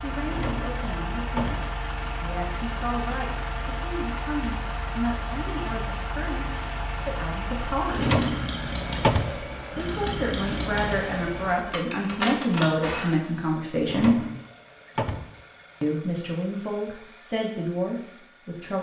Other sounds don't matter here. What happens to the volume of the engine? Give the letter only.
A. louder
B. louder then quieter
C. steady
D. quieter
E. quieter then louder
D.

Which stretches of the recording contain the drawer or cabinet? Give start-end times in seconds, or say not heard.
0.2-1.7, 7.8-9.4, 13.8-15.3.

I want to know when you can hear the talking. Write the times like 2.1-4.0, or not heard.
0.0-8.2, 9.8-14.2, 15.8-18.7.